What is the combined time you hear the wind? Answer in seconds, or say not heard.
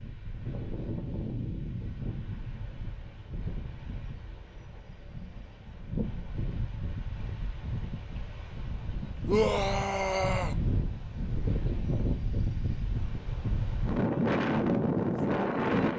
16 s.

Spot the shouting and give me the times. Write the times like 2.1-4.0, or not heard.
9.2-10.6.